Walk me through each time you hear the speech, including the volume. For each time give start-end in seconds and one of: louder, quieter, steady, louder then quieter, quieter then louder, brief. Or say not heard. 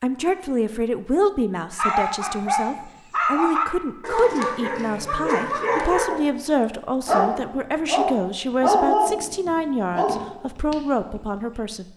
0.0-11.9 steady.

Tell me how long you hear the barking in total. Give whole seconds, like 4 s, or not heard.
9 s.